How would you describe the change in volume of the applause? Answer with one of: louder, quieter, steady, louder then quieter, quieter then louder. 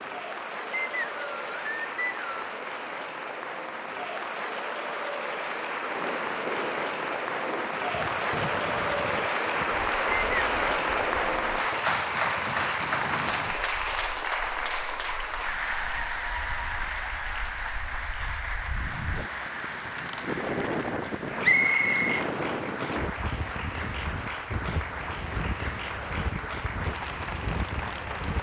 louder then quieter.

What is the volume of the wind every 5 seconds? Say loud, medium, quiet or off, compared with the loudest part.
off, medium, medium, quiet, loud, loud.